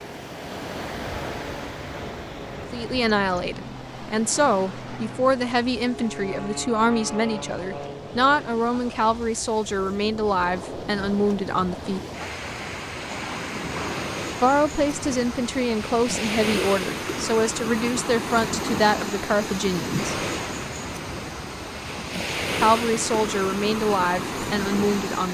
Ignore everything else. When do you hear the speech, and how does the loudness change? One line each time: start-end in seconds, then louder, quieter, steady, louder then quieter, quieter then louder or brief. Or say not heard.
2.7-12.0 steady
14.4-20.1 steady
22.6-25.2 brief.